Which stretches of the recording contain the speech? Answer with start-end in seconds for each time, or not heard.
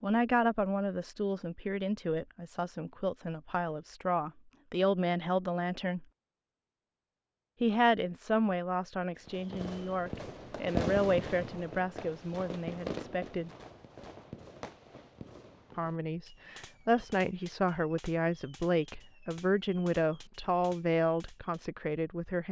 0.0-6.0, 7.6-13.5, 15.8-22.4.